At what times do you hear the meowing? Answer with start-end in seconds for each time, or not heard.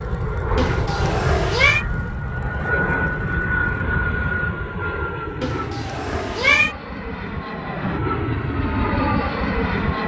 0.6-1.9, 5.4-6.8.